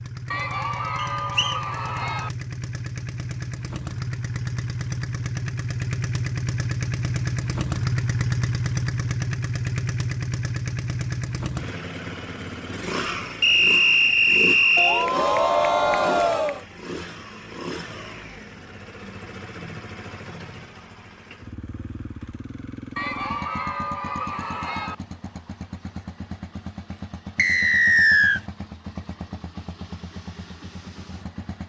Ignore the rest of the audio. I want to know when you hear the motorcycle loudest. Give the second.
8 s.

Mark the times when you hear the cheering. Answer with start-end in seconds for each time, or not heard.
0.3-2.3, 14.8-16.6, 22.9-24.9.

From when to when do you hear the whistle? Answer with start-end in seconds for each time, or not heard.
0.9-1.6, 13.4-15.1, 27.4-28.4.